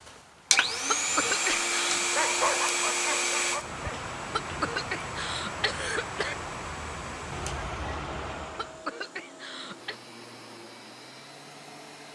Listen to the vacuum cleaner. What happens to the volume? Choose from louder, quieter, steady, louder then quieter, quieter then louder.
quieter.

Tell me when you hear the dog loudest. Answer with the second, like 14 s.
2 s.